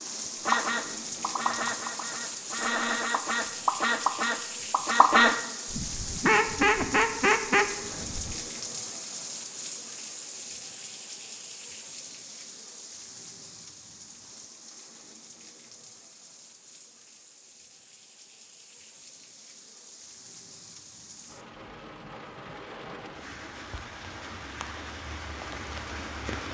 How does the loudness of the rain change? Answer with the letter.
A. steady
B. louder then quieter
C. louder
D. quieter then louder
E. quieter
D.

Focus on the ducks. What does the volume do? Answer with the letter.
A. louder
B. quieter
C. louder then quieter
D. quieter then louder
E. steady
A.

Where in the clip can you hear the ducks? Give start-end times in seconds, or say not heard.
0.5-8.4.